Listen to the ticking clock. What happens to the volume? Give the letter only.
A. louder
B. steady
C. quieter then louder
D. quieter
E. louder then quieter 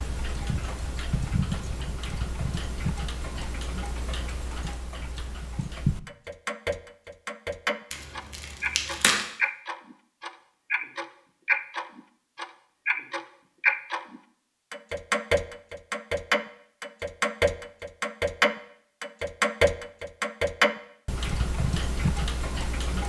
A.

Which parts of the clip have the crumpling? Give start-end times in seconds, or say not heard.
7.9-9.2.